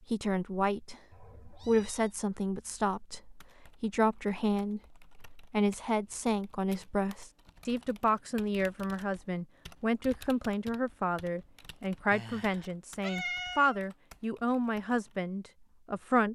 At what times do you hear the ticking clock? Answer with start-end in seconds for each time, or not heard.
not heard.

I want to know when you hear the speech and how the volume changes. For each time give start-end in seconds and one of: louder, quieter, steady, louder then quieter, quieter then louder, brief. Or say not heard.
0.1-16.3 steady.